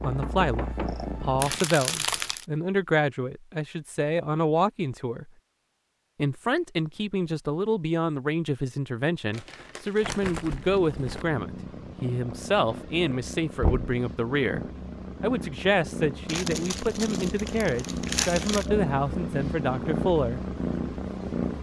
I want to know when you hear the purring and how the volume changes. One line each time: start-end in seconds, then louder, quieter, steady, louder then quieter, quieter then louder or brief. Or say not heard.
0.0-1.6 brief
10.4-21.5 louder.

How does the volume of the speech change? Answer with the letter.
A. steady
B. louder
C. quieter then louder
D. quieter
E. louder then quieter
A.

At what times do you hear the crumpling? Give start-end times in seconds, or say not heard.
1.4-2.5, 9.3-11.2, 16.2-18.6.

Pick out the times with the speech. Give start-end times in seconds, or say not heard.
0.0-5.3, 6.2-20.4.